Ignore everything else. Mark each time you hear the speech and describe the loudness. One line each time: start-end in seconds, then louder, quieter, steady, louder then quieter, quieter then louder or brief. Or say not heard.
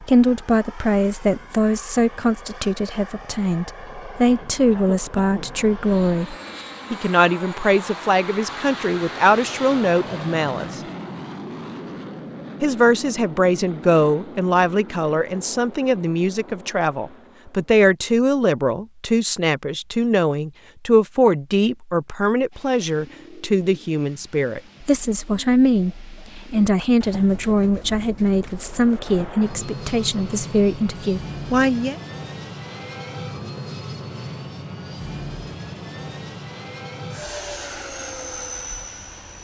0.0-10.8 steady
12.6-31.9 steady.